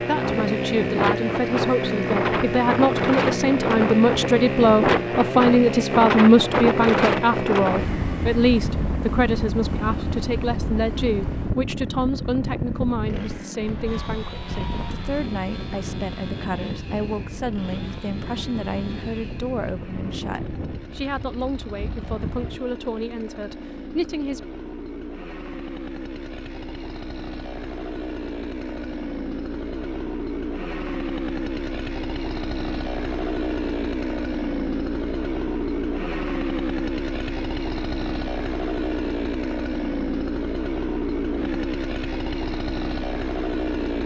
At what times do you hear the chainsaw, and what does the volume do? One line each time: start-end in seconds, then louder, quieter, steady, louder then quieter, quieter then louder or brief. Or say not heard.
0.0-44.0 quieter then louder.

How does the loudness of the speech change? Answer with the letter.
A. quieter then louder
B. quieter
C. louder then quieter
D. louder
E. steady
B.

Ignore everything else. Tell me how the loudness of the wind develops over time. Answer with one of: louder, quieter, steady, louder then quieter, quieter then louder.
quieter.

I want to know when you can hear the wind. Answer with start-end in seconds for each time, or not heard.
0.1-22.6.